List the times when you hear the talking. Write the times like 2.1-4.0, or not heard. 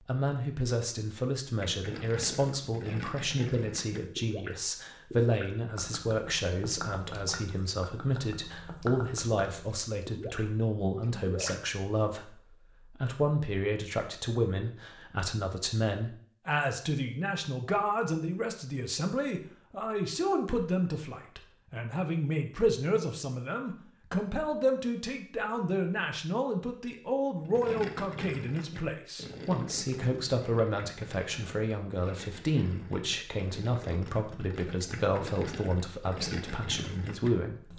0.0-37.7.